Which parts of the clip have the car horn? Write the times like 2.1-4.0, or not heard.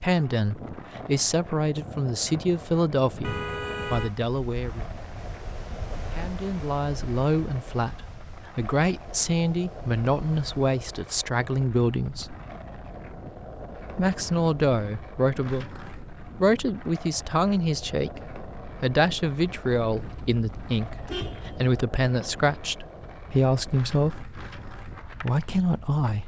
3.2-4.1, 19.9-21.8.